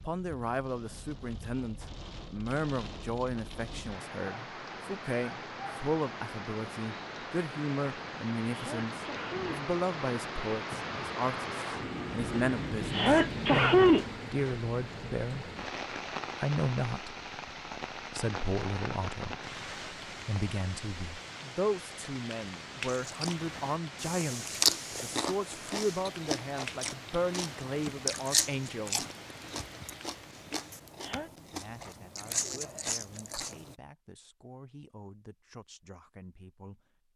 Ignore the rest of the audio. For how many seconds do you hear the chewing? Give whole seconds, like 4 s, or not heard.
11 s.